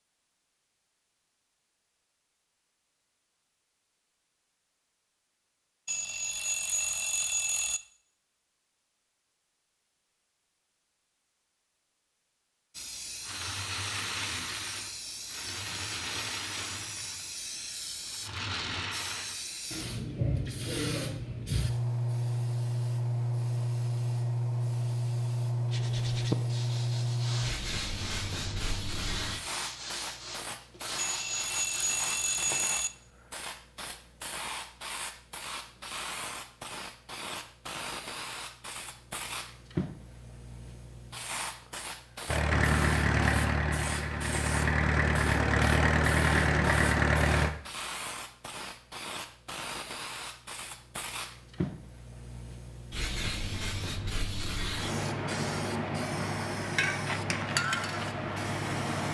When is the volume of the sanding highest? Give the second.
26 s.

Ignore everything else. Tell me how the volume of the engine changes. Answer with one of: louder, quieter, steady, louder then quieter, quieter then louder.
quieter then louder.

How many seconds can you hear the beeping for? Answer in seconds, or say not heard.
4 s.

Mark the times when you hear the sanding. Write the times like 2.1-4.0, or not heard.
25.7-32.5.